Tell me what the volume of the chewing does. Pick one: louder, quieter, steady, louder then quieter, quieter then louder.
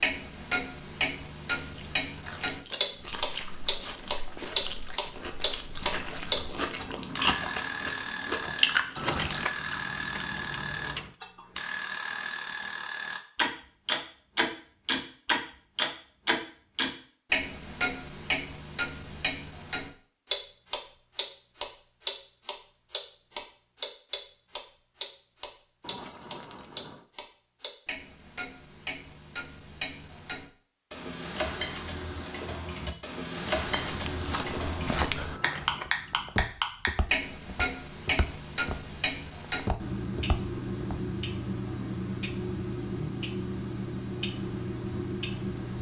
louder.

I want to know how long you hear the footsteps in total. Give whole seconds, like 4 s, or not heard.
11 s.